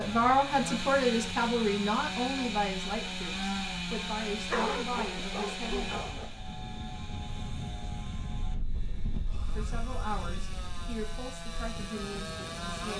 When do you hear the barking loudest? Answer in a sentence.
The volume of the barking peaks at 5 seconds.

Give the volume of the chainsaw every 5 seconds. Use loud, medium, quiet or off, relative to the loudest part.
loud, medium, medium.